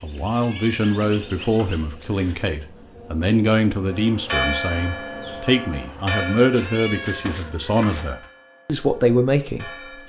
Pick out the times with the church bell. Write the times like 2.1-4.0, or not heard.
3.8-10.0.